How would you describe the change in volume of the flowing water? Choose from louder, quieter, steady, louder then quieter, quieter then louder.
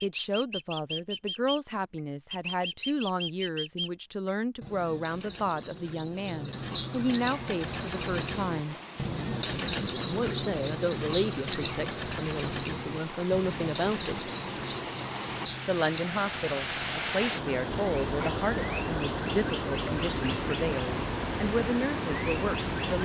louder.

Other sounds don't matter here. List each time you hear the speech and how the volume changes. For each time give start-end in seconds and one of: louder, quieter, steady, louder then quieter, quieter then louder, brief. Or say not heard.
0.0-8.8 steady
10.1-14.3 quieter then louder
15.7-23.0 steady.